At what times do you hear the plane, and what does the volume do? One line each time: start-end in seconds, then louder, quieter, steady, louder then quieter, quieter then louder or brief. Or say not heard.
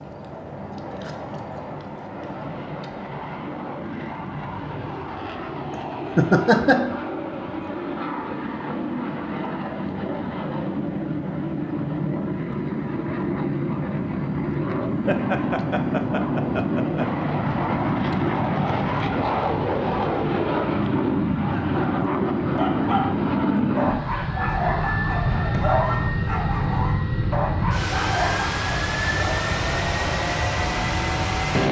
0.0-31.6 louder.